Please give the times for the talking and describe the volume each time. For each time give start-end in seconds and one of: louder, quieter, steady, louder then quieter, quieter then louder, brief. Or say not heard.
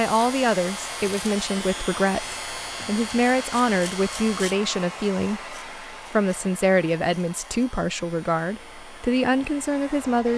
0.0-10.3 steady.